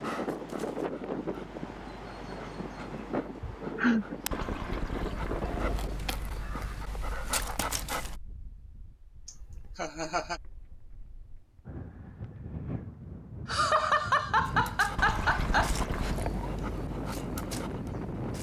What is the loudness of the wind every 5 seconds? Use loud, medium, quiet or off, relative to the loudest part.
loud, medium, medium, loud.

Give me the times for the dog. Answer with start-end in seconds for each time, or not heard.
0.0-8.2, 14.4-18.3.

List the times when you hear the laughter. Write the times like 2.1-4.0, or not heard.
3.4-4.0, 9.2-10.4, 13.4-15.7.